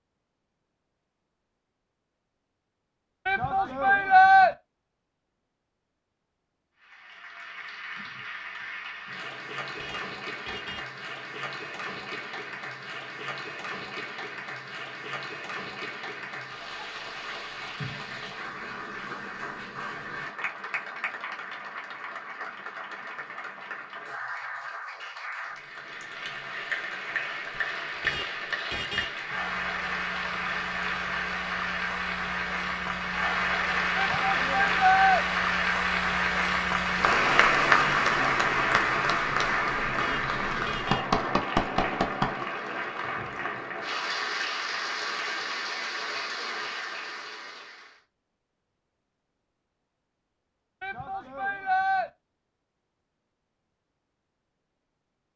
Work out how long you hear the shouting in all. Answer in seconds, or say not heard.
4 s.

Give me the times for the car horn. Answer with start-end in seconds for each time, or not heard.
9.7-10.9, 27.9-29.1, 39.9-41.1.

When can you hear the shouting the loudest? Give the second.
4 s.